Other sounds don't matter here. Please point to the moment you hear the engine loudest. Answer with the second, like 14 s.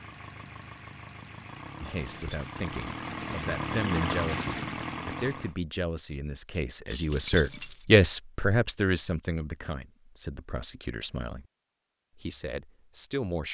4 s.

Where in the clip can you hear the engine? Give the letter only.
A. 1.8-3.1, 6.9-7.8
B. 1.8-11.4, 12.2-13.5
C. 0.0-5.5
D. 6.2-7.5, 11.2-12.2
C.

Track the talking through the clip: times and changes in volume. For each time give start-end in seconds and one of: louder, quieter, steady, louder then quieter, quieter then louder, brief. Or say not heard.
1.8-11.4 louder then quieter
12.2-13.5 brief.